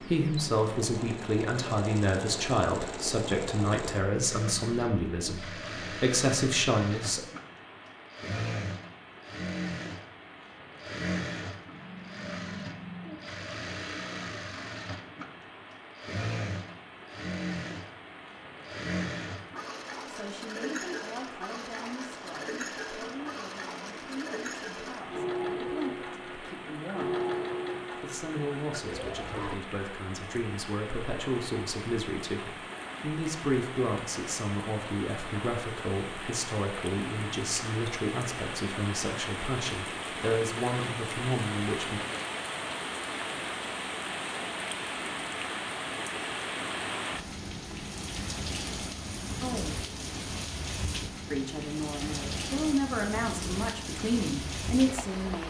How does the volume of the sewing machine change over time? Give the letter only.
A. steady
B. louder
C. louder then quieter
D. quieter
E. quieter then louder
A.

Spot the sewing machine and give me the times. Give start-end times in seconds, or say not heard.
0.0-29.6.